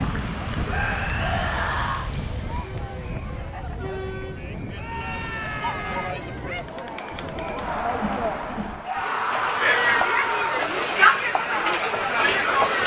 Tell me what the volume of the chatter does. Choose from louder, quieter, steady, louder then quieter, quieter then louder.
louder.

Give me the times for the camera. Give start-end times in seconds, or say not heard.
not heard.